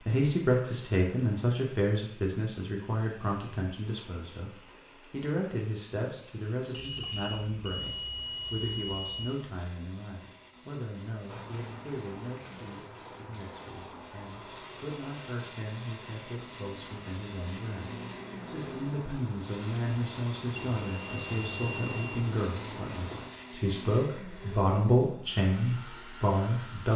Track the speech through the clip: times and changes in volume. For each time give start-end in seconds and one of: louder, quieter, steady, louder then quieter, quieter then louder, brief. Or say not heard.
0.0-26.9 quieter then louder.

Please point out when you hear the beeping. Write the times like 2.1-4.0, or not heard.
6.7-9.3, 20.6-22.2.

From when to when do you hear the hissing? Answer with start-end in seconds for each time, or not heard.
11.2-23.3.